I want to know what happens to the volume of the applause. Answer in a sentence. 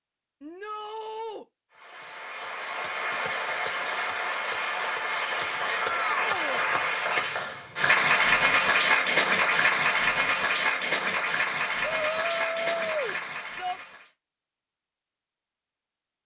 The loudness of the applause goes up, then down.